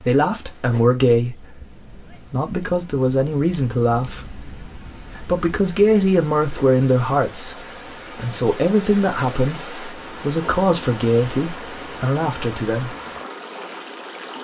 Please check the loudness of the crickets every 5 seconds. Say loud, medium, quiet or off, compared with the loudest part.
loud, loud, off.